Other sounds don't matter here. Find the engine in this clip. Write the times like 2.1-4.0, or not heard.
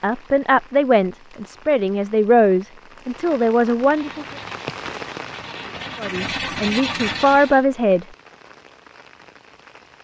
3.8-7.7.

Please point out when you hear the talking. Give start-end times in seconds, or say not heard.
0.0-4.2, 6.0-8.1.